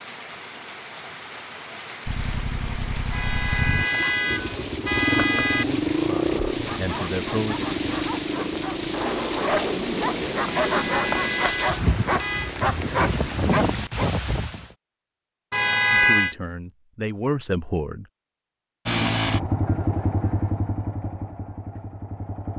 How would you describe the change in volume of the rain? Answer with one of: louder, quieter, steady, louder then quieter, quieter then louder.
louder.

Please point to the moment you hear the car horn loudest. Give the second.
16 s.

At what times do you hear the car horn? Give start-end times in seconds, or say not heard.
3.1-5.7, 10.7-12.6, 15.5-16.4.